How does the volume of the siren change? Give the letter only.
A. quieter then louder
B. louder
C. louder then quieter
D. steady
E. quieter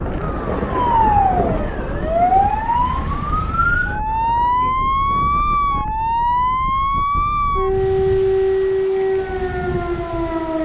D.